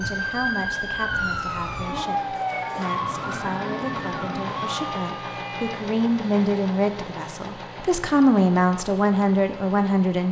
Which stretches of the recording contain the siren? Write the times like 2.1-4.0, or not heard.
0.0-5.8.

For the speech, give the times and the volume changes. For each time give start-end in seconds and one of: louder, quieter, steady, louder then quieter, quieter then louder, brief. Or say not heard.
0.0-10.2 louder.